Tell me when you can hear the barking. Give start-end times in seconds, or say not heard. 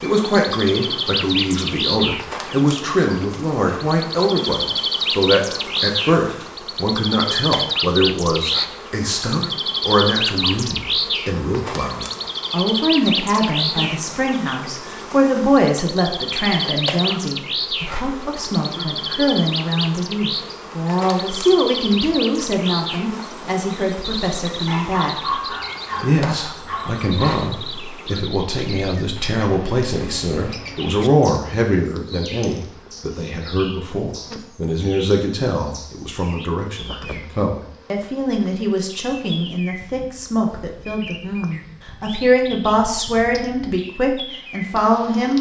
24.6-27.4.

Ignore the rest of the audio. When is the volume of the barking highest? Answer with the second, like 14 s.
25 s.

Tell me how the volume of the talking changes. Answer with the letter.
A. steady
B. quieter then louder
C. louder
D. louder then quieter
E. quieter
A.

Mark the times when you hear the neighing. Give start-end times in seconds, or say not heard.
not heard.